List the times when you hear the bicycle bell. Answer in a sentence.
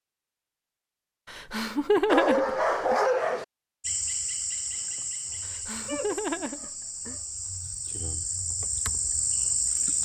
The bicycle bell can't be heard in this clip.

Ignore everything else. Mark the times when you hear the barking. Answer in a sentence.
You can hear the barking from 2.0 to 3.5 s and from 5.8 to 7.2 s.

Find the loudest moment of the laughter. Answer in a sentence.
The volume of the laughter peaks at 2 seconds.